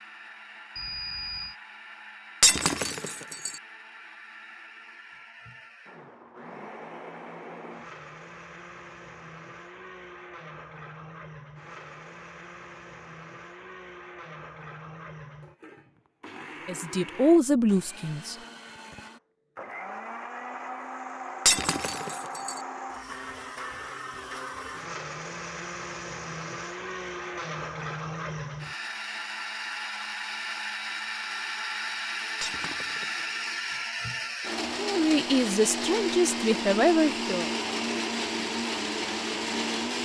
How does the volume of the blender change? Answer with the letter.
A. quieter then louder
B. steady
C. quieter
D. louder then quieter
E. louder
E.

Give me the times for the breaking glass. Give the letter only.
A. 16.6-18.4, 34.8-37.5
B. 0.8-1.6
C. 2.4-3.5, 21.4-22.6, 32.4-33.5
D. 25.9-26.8
C.